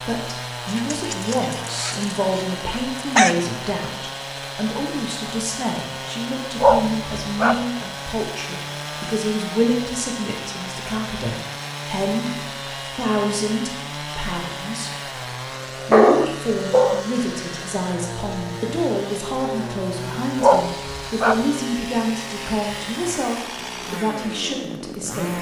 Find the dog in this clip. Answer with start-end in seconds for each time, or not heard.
0.7-3.4, 6.6-7.7, 15.9-17.0, 20.4-21.4.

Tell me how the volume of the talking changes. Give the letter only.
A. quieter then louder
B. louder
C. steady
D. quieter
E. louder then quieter
C.